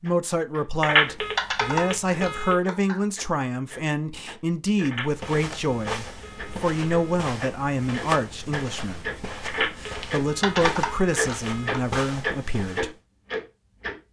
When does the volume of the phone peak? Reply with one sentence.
The volume of the phone peaks at 1 second.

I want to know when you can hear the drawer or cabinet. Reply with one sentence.
The drawer or cabinet can't be heard in this clip.